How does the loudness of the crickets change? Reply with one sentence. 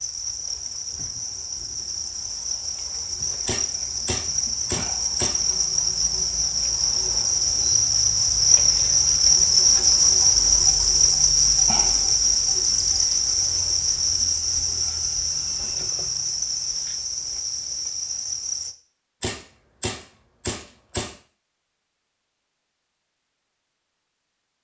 The volume of the crickets goes up, then down.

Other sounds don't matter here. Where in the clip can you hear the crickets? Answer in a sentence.
You can hear the crickets from 0.0 to 18.8 s.